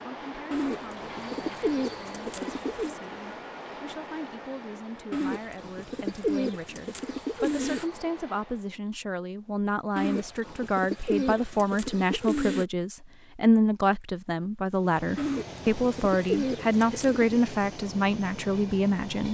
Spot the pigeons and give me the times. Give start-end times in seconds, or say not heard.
0.5-3.0, 5.1-7.8, 9.9-12.7, 15.2-17.4.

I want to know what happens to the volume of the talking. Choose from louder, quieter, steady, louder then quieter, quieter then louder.
louder.